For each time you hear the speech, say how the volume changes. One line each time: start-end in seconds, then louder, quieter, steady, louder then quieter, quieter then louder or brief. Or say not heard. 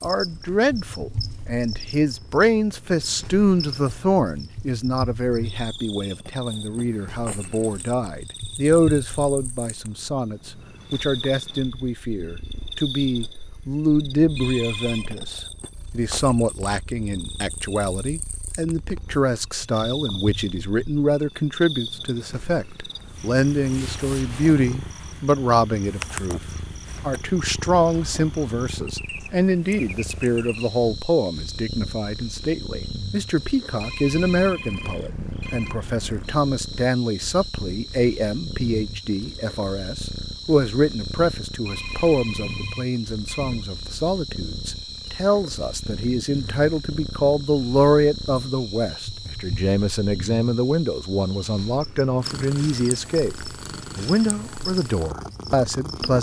0.0-26.4 steady
27.1-56.1 steady.